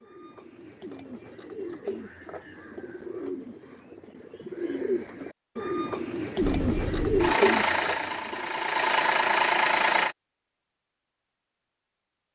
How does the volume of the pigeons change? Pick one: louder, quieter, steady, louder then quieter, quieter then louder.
louder.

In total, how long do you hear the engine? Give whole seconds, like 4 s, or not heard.
4 s.